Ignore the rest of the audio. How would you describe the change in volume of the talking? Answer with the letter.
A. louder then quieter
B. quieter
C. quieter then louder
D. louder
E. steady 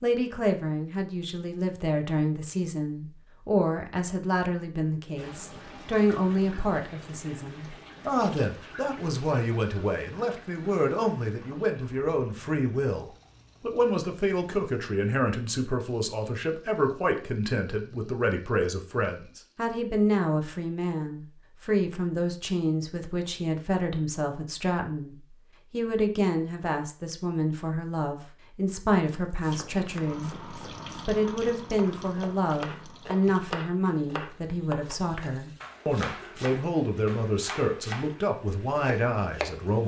E.